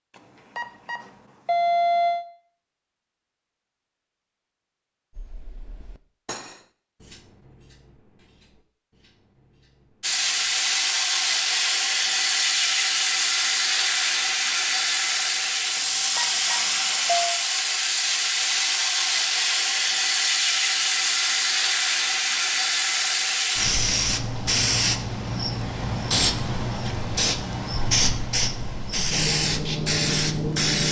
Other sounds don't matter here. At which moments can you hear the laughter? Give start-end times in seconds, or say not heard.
not heard.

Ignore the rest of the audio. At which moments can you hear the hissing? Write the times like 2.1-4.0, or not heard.
10.0-30.8.